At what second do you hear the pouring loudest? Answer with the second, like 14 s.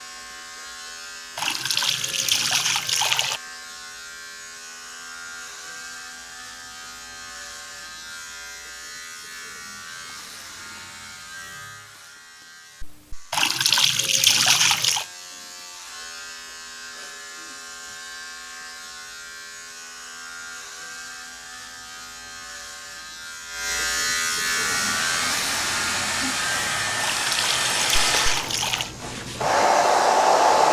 14 s.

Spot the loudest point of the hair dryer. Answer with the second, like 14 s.
30 s.